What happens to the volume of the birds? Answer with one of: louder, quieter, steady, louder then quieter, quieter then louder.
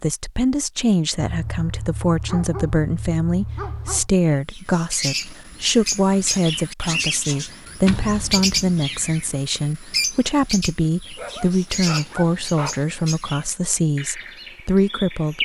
quieter.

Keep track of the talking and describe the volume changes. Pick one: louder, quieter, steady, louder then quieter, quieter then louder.
steady.